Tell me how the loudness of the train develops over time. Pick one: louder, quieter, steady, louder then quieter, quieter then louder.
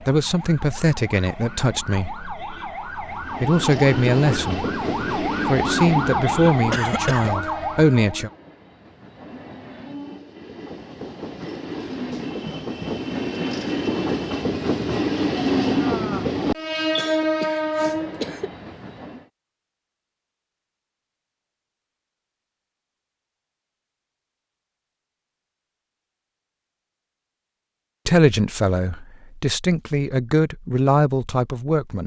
quieter then louder.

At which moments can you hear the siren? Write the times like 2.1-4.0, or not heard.
0.0-8.3.